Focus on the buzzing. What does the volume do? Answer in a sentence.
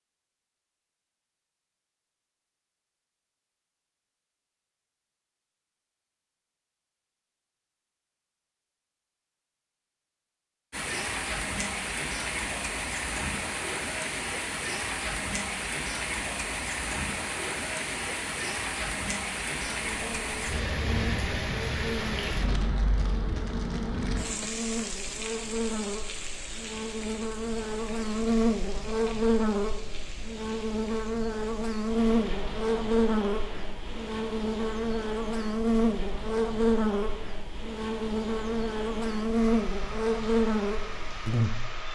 The volume of the buzzing goes up.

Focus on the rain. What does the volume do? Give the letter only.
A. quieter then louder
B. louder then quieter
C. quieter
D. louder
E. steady
C.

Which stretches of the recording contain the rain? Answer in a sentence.
You can hear the rain from 10.7 to 41.9 s.